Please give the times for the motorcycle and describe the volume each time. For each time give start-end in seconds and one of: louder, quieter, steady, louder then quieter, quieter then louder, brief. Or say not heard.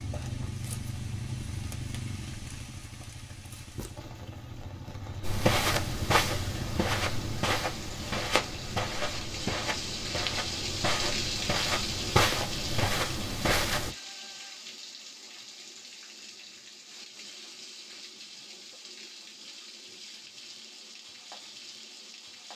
0.0-7.5 quieter then louder.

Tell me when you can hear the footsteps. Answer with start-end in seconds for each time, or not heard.
5.2-13.9.